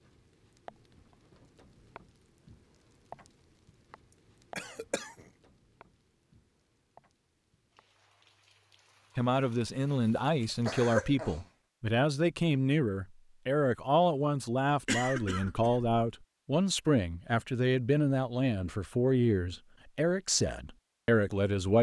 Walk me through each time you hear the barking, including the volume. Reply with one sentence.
You can't hear the barking here.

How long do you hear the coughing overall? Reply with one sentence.
You can hear the coughing for 3 seconds altogether.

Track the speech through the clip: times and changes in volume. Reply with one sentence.
The speech can be heard from 9.2 to 21.7 s, at a steady volume.